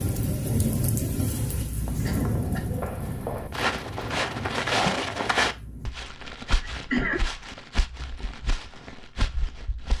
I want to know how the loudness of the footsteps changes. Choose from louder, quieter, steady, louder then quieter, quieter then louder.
louder then quieter.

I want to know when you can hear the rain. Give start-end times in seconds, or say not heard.
0.0-6.0.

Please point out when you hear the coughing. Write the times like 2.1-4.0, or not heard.
2.0-2.7, 6.6-7.3.